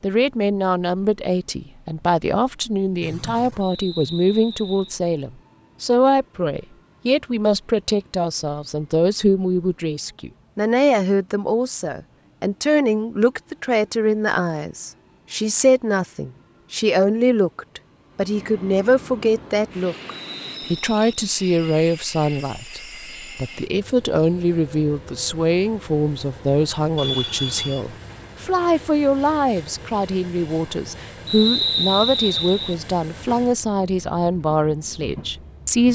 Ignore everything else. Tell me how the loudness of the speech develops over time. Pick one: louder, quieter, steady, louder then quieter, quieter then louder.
steady.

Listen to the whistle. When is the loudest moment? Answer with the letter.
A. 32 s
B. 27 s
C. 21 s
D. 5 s
A.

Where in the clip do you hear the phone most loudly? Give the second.
27 s.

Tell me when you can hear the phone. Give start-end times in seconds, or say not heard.
3.0-3.6, 26.9-27.9.